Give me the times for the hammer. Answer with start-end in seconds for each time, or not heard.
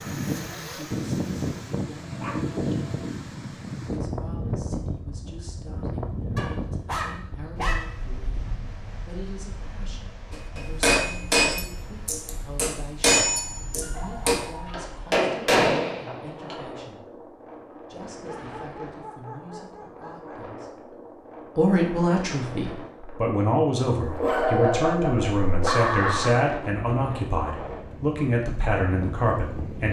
10.3-16.6.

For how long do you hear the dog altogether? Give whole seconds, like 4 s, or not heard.
9 s.